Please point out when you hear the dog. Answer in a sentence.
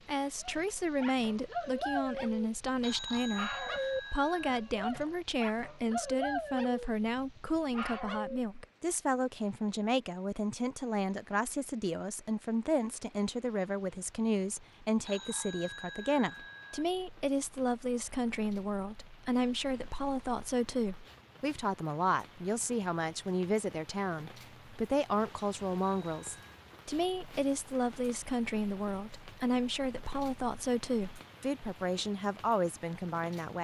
You can hear the dog from 0.4 to 8.4 s.